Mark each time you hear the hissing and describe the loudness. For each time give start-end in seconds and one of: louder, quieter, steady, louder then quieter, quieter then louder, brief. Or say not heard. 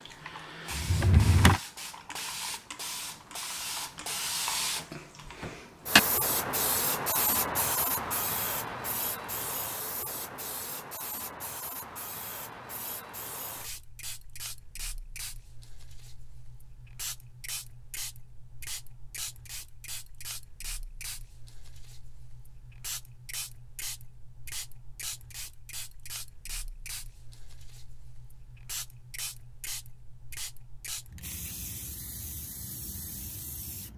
0.0-33.9 quieter.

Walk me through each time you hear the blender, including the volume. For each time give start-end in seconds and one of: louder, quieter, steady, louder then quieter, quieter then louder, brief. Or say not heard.
not heard.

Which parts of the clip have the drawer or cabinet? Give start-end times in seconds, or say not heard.
0.7-1.6.